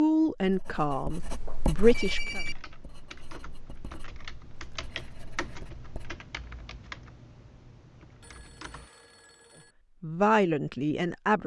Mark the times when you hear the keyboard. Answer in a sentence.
You can hear the keyboard from 2.4 to 8.9 s.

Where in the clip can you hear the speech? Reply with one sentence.
The speech can be heard from 0.0 to 2.4 s and from 10.0 to 11.4 s.